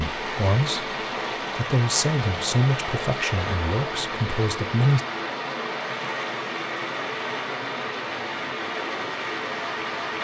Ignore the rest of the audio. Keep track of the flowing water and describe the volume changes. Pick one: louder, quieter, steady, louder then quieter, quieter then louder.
steady.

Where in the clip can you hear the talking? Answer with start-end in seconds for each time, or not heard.
0.0-5.0.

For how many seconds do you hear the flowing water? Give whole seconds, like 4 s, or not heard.
10 s.